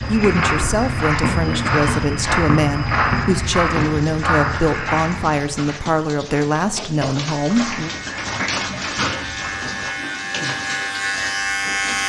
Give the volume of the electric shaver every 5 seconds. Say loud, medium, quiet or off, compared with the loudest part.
off, medium, loud.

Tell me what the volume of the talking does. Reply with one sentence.
The loudness of the talking stays about the same.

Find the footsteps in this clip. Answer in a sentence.
The footsteps can be heard from 0.0 to 5.5 s and from 7.5 to 9.9 s.